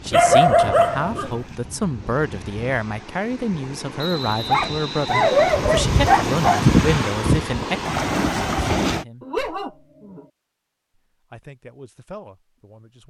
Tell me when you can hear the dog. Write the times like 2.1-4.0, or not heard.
0.1-1.4, 4.5-6.7, 9.2-10.2.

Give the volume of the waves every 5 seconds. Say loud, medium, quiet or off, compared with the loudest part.
quiet, loud, off.